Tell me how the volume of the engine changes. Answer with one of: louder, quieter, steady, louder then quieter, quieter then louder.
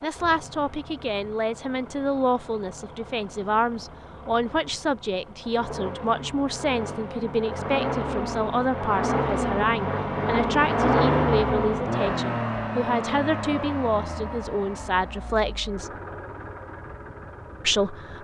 louder then quieter.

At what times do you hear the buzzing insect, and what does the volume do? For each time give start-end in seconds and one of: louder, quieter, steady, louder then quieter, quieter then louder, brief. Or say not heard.
not heard.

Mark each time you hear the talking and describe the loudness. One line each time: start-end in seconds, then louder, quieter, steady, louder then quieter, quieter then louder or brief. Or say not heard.
0.0-15.9 steady
17.6-18.2 brief.